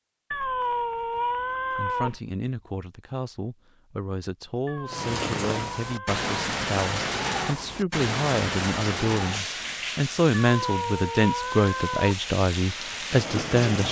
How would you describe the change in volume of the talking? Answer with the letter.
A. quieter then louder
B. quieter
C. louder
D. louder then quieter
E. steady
C.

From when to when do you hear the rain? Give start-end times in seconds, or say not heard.
4.8-13.8.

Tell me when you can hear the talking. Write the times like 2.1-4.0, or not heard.
1.8-13.8.